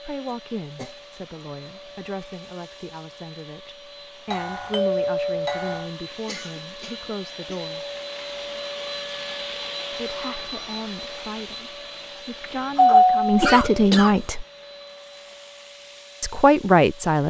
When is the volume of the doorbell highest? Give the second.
13 s.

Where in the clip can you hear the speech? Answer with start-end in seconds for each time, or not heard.
0.0-7.8, 9.9-14.4, 16.2-17.2.